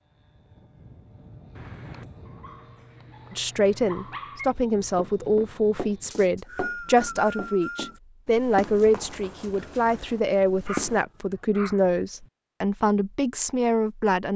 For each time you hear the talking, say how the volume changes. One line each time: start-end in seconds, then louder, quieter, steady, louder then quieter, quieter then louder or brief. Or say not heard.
3.3-14.3 steady.